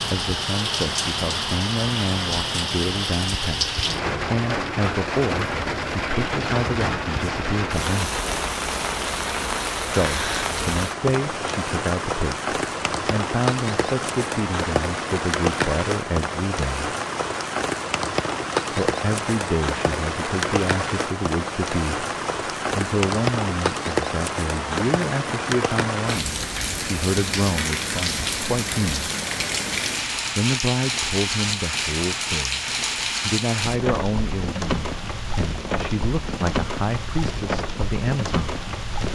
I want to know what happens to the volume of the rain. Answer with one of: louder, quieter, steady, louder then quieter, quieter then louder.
steady.